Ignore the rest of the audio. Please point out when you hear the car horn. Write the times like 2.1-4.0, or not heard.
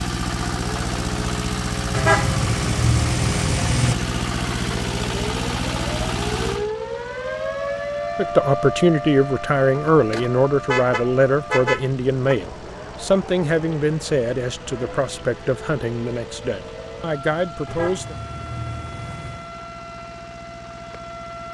1.9-4.0, 9.9-12.3, 17.6-19.5.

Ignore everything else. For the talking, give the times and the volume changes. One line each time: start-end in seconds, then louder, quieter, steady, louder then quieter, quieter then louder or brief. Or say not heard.
8.2-18.1 quieter.